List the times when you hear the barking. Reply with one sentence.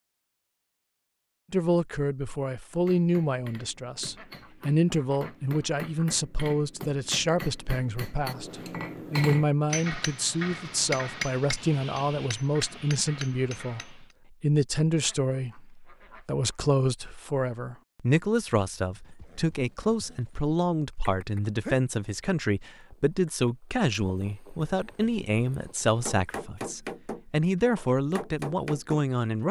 The barking can't be heard in this clip.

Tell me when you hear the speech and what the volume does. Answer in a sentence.
The speech can be heard from 1.5 to 29.4 s, at a steady volume.